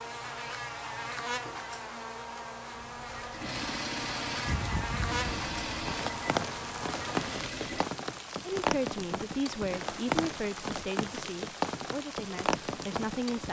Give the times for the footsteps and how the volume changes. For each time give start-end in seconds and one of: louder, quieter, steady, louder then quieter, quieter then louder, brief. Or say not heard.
not heard.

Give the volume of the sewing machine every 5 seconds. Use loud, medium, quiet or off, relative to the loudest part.
loud, loud, off.